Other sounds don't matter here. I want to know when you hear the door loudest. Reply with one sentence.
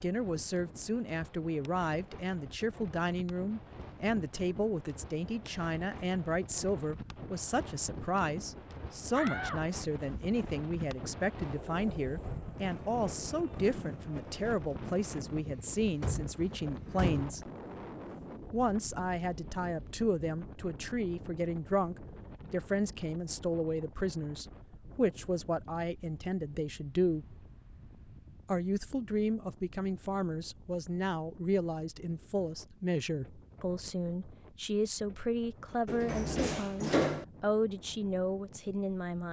The loudest moment of the door is at 37 seconds.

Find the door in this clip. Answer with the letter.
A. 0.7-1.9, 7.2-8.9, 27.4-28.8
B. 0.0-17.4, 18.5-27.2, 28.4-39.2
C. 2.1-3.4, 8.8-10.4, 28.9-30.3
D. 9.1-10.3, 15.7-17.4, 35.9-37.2
D.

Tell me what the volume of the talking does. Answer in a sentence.
The volume of the talking stays about the same.